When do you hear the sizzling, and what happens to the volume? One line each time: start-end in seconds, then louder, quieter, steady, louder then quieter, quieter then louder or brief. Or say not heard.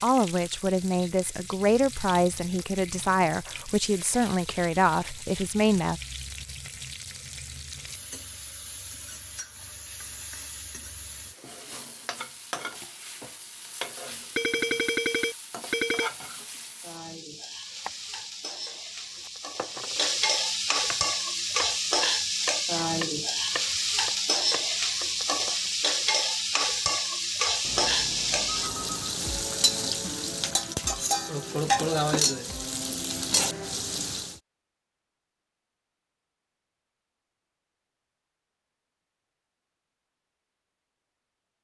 0.0-34.4 louder.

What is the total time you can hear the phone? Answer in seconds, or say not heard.
3 s.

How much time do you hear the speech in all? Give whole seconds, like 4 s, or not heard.
6 s.